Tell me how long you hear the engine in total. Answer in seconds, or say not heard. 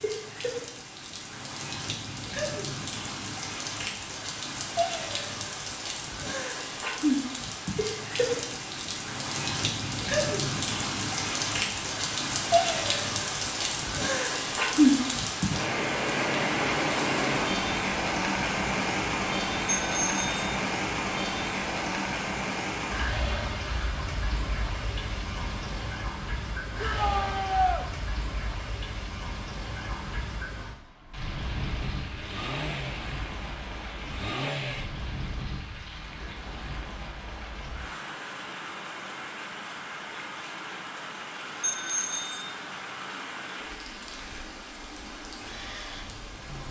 3 s.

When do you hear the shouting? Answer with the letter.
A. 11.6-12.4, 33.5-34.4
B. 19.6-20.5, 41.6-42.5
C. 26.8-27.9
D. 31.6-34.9
C.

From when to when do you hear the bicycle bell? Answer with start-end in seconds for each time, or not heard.
19.6-20.5, 41.6-42.5.